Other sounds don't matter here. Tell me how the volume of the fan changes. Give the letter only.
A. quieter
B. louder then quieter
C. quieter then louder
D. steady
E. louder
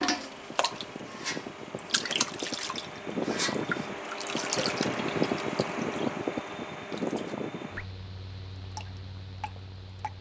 B.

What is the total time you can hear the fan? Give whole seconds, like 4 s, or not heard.
10 s.